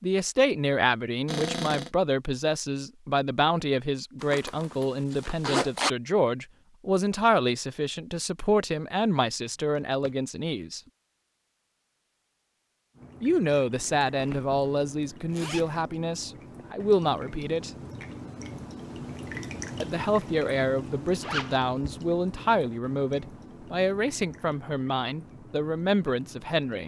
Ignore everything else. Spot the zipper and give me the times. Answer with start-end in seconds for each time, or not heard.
4.2-5.9, 13.8-15.8, 21.2-21.6.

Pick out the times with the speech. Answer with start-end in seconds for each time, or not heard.
0.0-10.8, 13.2-17.7, 19.8-26.8.